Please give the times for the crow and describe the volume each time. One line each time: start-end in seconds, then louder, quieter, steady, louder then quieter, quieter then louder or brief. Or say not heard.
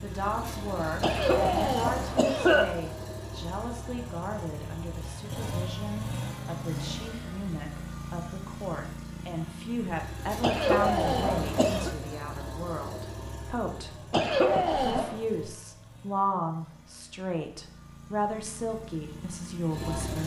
not heard.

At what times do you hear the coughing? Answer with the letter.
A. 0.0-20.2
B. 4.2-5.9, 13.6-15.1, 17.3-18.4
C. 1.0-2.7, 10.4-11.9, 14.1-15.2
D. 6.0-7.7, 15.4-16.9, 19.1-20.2
C.